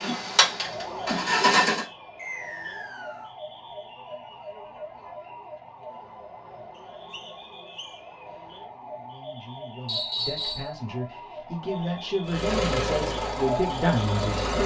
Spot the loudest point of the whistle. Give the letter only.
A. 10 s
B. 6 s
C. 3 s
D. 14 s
A.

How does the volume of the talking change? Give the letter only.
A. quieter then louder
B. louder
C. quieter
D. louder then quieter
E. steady
B.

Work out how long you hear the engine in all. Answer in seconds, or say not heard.
4 s.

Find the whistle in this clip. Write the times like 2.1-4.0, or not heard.
2.1-3.3, 6.8-8.0, 9.8-10.7.